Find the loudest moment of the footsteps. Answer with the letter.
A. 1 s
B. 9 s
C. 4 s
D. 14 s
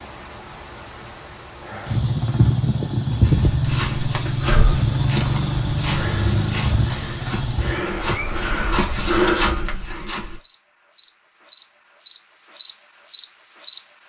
B.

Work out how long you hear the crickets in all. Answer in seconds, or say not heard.
14 s.